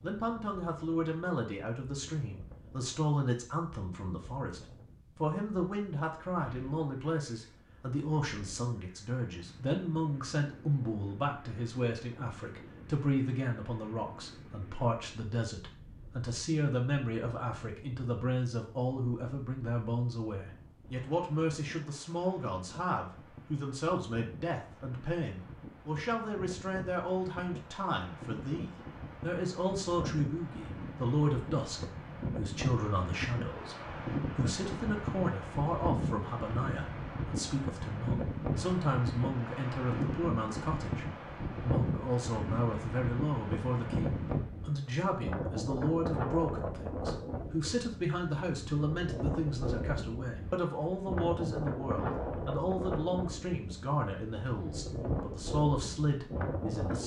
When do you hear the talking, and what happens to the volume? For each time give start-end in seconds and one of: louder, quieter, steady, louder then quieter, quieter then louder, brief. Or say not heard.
0.0-57.0 steady.